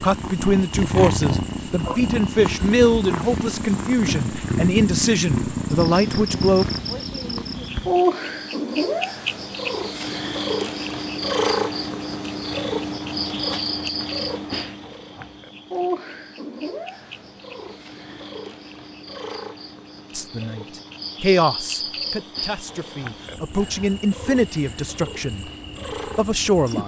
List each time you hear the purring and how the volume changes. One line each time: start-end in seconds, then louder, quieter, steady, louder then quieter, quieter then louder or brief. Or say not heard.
0.0-26.8 quieter.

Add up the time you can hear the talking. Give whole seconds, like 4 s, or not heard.
13 s.